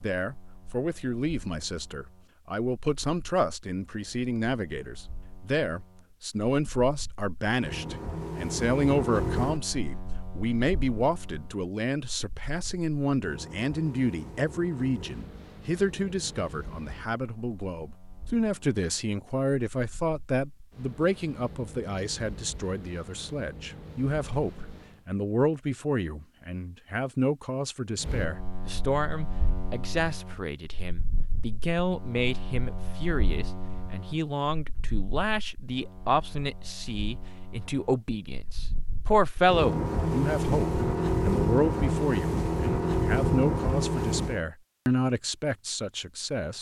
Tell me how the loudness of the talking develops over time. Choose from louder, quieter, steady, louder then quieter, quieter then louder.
steady.